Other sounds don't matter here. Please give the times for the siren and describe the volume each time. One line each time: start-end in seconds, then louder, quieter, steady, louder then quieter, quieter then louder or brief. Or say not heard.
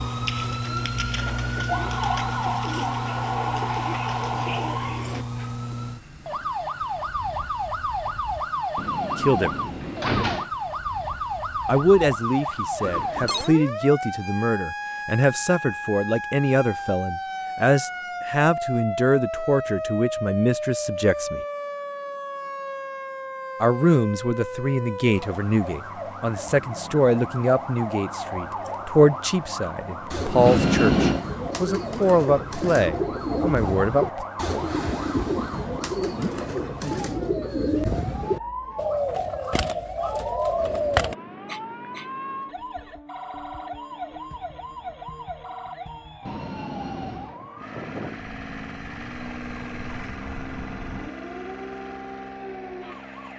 0.0-53.3 quieter.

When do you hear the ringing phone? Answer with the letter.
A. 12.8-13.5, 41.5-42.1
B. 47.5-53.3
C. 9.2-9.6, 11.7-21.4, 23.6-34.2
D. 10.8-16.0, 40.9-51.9
A.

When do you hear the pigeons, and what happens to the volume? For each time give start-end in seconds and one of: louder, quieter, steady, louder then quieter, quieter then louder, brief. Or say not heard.
0.0-5.2 steady
30.1-41.1 steady.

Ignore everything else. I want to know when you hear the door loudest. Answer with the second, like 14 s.
31 s.